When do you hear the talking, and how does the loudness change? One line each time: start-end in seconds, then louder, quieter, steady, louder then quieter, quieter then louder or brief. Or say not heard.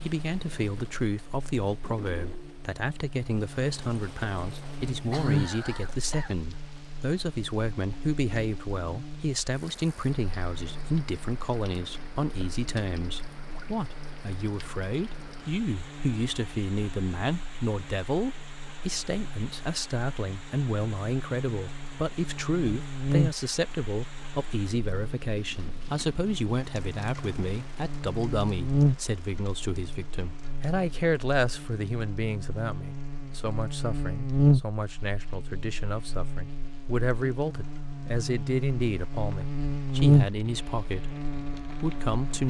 0.0-42.4 steady.